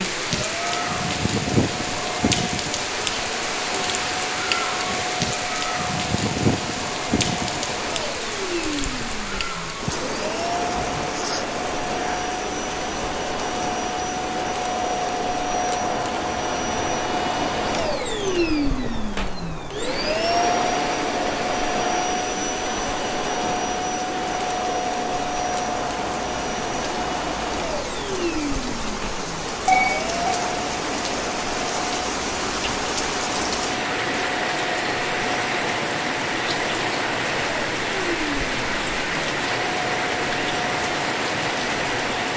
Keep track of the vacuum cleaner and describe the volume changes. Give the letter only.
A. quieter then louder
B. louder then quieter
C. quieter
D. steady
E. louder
B.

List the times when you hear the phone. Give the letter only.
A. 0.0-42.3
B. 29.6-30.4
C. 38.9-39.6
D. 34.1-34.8
B.